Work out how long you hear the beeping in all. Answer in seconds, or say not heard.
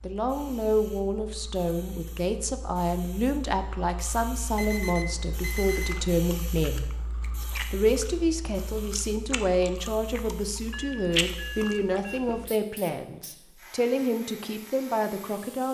3 s.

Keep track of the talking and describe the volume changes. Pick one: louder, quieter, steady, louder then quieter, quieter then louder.
steady.